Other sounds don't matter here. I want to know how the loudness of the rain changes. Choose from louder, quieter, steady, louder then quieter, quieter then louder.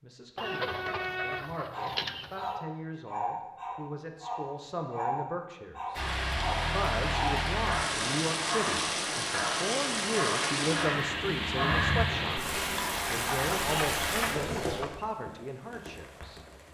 quieter.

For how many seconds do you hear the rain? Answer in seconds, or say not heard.
11 s.